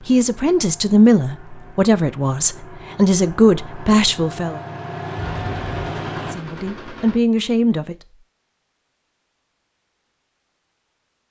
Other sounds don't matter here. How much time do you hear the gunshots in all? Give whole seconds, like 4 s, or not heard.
2 s.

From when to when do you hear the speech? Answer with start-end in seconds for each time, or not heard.
0.1-4.6, 6.2-8.0.